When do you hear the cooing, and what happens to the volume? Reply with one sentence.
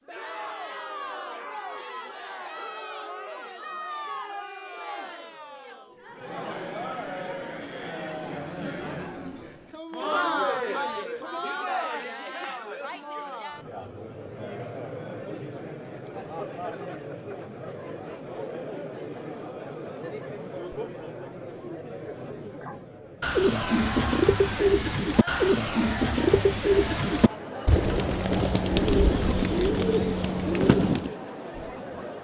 You can hear the cooing from 22.6 to 31.1 s, at a steady volume.